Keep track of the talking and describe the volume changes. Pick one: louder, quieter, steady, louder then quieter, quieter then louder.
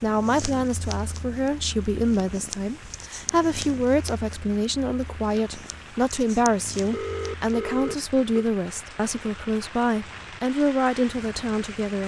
steady.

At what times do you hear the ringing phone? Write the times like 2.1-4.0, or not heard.
6.9-8.4.